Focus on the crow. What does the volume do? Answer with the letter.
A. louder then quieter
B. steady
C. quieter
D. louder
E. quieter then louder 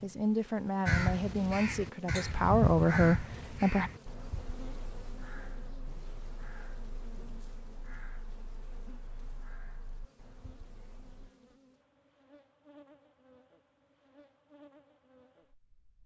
C.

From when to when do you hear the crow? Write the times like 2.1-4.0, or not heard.
0.8-11.3.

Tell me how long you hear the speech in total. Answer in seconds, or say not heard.
4 s.